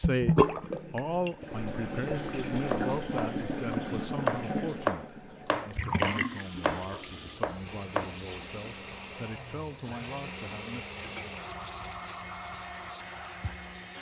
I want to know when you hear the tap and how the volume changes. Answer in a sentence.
The tap can be heard from 0.0 to 13.8 s, getting quieter.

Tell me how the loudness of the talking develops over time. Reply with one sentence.
The volume of the talking goes down.